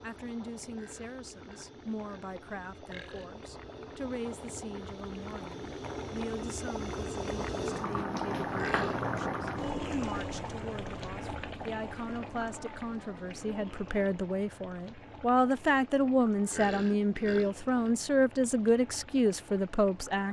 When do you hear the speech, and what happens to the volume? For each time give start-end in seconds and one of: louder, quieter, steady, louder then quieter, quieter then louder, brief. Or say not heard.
0.0-20.2 louder.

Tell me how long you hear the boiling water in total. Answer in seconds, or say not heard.
20 s.